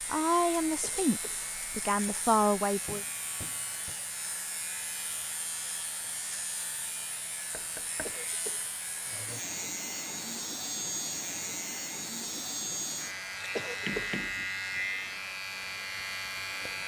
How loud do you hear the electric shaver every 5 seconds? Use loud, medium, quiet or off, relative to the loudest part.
medium, medium, loud, loud.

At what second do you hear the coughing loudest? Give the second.
14 s.